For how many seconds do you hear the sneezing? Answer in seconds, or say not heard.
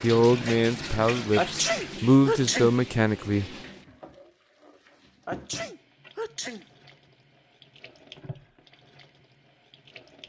3 s.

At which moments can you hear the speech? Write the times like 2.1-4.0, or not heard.
0.0-3.5.